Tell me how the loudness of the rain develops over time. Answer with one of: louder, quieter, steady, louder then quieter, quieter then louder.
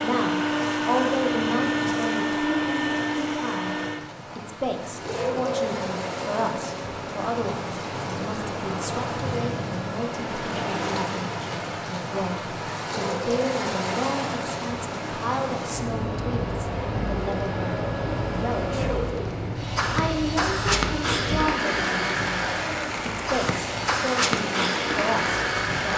louder.